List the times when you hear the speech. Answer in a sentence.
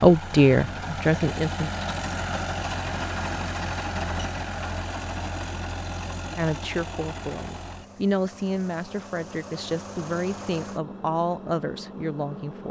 You can hear the speech from 0.0 to 1.7 s and from 6.3 to 12.6 s.